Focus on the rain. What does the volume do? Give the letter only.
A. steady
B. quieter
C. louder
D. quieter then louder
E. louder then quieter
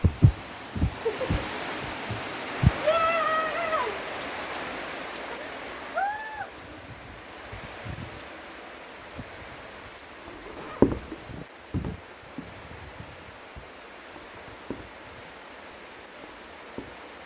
B.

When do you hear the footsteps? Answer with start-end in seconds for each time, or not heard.
0.0-2.7, 10.2-17.1.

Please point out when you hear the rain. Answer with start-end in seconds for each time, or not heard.
0.0-17.2.